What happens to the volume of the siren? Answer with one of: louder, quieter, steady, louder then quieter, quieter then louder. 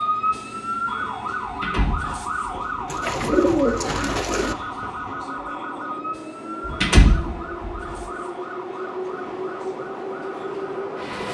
quieter.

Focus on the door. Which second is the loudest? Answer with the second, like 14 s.
7 s.